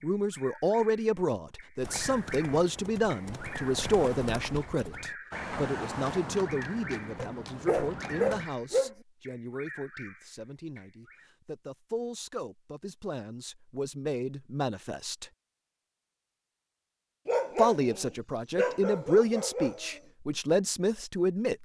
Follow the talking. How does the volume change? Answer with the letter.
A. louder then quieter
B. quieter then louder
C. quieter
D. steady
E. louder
B.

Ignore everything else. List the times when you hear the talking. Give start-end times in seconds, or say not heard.
0.0-15.3, 17.6-21.6.